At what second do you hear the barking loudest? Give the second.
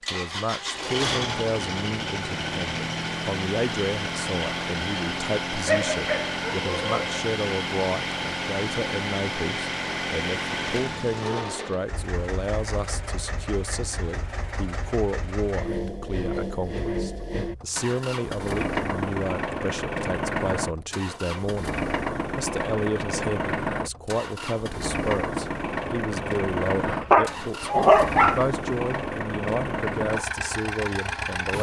28 s.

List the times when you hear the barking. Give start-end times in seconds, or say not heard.
5.7-7.2, 26.9-28.4.